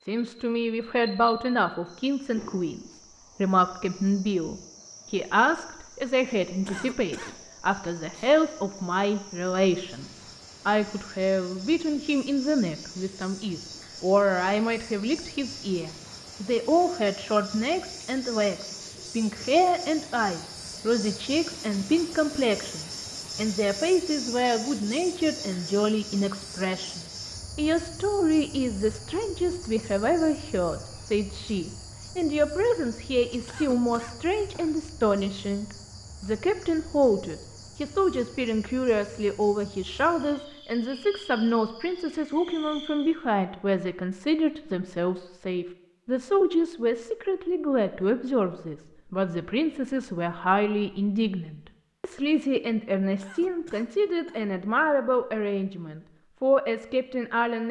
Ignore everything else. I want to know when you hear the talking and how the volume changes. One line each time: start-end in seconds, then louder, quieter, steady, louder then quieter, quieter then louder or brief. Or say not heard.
0.0-57.6 steady.